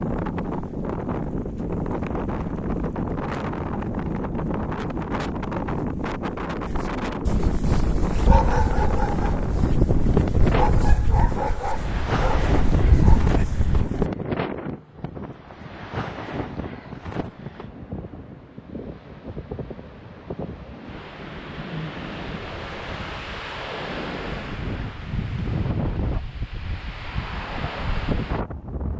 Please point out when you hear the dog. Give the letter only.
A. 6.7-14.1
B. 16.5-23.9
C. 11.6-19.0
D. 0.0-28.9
A.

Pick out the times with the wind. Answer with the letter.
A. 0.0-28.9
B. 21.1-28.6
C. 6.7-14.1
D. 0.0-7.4
A.